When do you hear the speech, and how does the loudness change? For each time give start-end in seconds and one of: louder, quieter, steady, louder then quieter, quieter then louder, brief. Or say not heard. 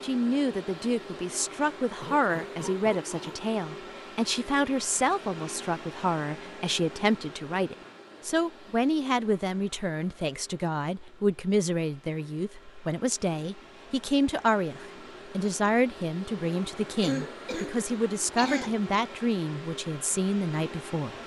0.0-21.2 steady.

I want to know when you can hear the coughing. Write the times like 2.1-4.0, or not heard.
2.0-3.5, 17.0-18.8.